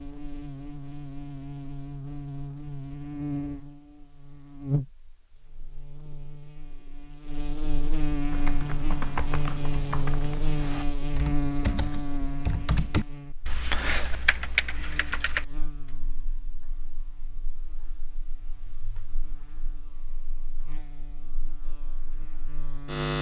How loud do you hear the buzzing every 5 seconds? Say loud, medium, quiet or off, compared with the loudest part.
loud, loud, loud, quiet, loud.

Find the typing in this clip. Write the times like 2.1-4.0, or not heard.
8.3-15.9.